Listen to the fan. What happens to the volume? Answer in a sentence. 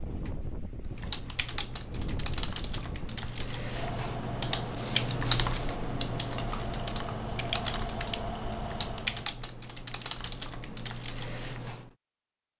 The loudness of the fan goes up.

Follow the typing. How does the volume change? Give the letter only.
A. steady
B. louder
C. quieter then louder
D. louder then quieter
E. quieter
D.